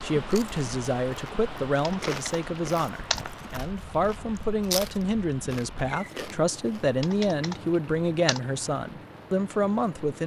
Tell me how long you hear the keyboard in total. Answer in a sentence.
You can hear the keyboard for 3 seconds altogether.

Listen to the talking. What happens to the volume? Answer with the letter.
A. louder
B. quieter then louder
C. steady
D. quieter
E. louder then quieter
C.